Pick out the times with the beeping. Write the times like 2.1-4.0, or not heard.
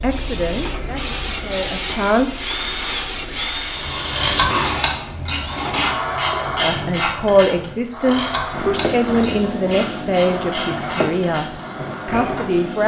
not heard.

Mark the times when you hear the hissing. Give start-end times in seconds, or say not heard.
0.0-4.3, 8.5-12.8.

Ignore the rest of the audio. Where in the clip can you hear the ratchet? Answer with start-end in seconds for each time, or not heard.
4.1-12.6.